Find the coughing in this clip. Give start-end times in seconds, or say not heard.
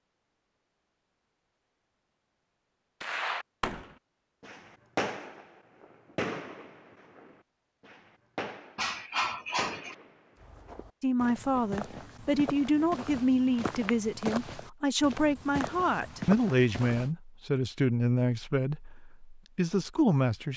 8.8-9.9.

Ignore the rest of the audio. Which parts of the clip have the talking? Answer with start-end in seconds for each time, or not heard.
11.0-20.5.